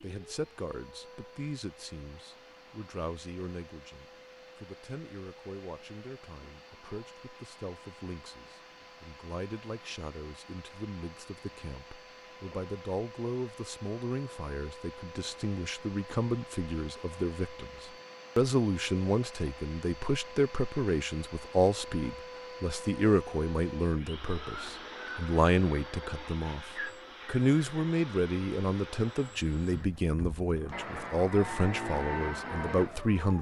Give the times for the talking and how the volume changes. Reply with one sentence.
The talking can be heard from 0.0 to 33.3 s, getting louder.